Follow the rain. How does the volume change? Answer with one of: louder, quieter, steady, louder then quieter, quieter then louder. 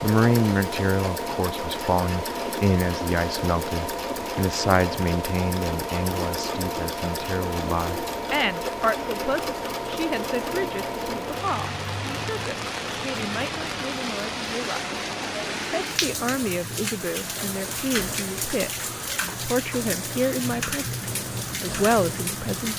louder.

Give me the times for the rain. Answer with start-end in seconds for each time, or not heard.
0.0-22.7.